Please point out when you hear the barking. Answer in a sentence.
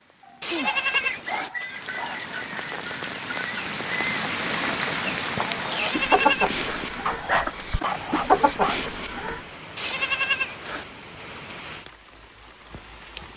You can hear the barking from 0.2 to 2.2 s and from 7.0 to 8.8 s.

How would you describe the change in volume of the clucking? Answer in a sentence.
The volume of the clucking goes up.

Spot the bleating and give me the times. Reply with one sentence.
The bleating can be heard from 0.4 to 1.5 s, from 5.8 to 6.8 s and from 9.8 to 10.8 s.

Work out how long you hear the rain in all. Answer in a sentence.
You can hear the rain for 13 seconds altogether.